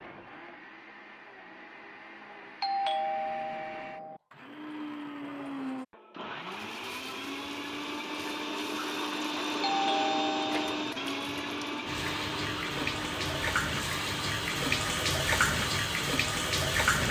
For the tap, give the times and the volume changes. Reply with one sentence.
The tap can be heard from 6.4 to 17.0 s, getting louder.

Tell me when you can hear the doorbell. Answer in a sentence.
You can hear the doorbell from 2.6 to 4.2 s and from 9.6 to 10.8 s.